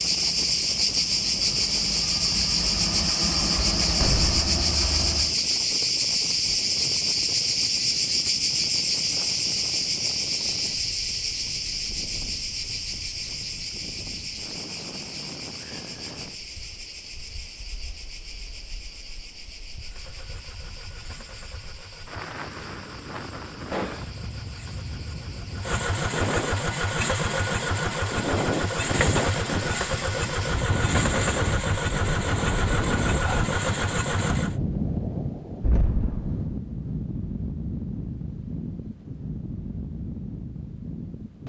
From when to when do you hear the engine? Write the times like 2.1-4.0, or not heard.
0.0-5.4, 19.8-34.5.